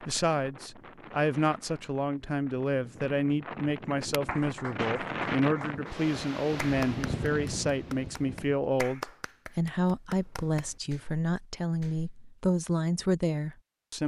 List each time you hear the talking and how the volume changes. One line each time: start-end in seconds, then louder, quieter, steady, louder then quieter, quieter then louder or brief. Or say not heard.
0.1-14.0 steady.